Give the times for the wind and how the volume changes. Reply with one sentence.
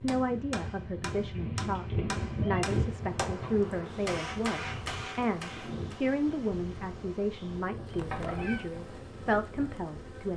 The wind can be heard from 0.0 to 10.3 s, getting quieter.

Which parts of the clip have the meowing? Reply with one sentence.
You can hear the meowing from 1.3 to 2.6 s and from 7.9 to 8.7 s.